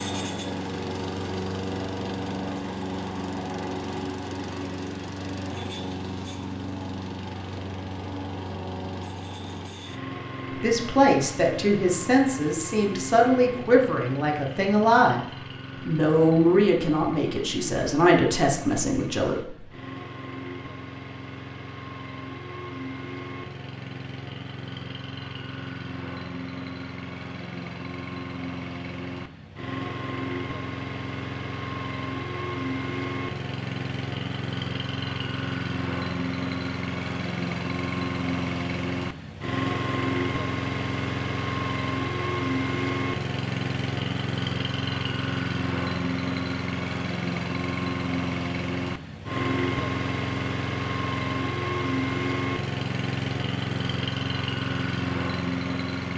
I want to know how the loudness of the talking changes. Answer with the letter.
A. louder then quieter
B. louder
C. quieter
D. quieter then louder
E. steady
E.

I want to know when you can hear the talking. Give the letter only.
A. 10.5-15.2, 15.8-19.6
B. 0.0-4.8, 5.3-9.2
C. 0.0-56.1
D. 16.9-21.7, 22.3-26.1
A.